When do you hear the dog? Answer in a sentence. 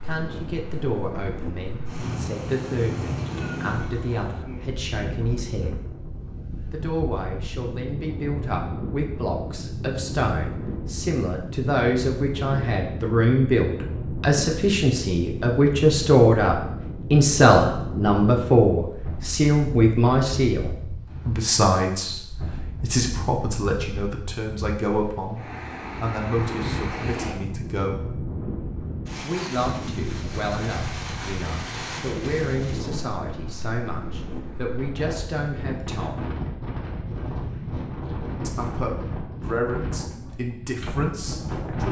You can't hear the dog here.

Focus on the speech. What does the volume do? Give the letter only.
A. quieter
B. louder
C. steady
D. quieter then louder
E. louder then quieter
E.